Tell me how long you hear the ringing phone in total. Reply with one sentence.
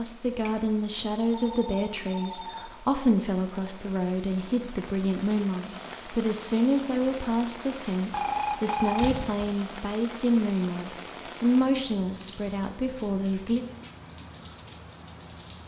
The ringing phone can be heard for 3 seconds in total.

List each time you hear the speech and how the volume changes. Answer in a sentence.
You can hear the speech from 0.0 to 13.7 s, at a steady volume.